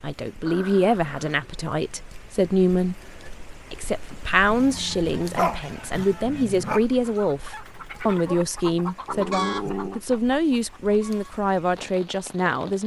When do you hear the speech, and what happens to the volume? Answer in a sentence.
The speech can be heard from 0.0 to 12.8 s, at a steady volume.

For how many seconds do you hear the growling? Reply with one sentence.
You can hear the growling for 4 seconds altogether.